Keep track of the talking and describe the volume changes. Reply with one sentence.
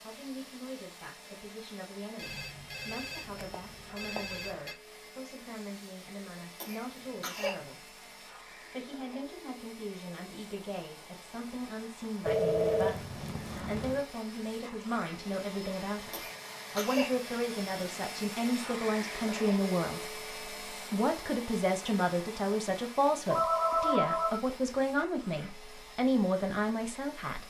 The loudness of the talking goes up.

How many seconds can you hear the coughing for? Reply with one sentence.
You can hear the coughing for 2 seconds altogether.